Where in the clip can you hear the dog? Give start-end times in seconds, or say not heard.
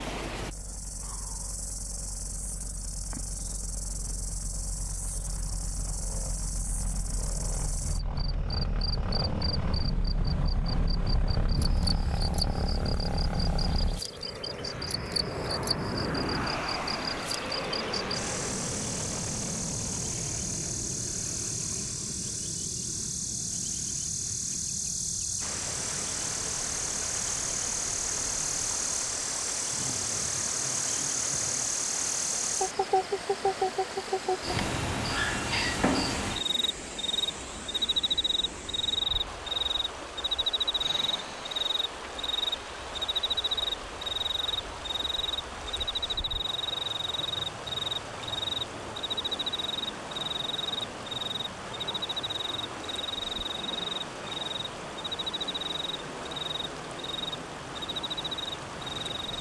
not heard.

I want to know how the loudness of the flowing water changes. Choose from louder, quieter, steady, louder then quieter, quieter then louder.
steady.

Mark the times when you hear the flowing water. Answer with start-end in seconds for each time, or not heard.
25.4-59.3.